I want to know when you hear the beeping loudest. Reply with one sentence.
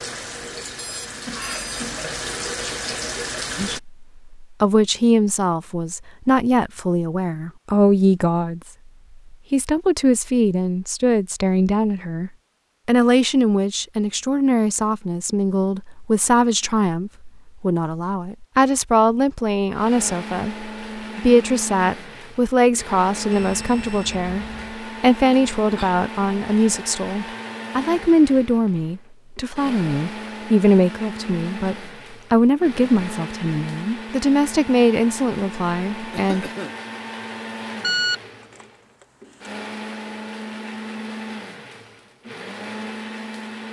The volume of the beeping peaks at 38 seconds.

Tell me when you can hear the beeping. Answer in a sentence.
The beeping can be heard from 0.8 to 1.6 s, from 23.3 to 24.8 s and from 37.8 to 38.6 s.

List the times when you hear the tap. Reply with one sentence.
You can hear the tap from 0.0 to 3.8 s.